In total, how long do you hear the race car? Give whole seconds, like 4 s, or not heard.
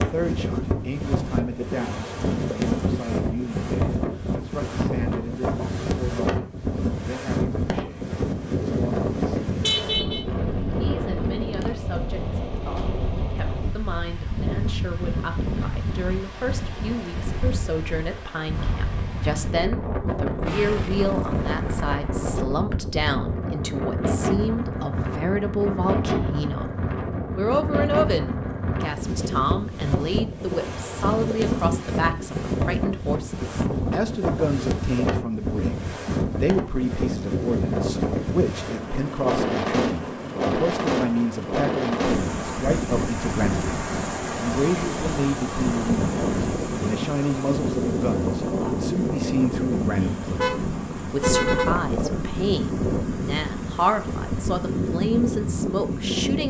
2 s.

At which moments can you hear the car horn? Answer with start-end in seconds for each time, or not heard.
9.6-10.2, 50.4-52.1.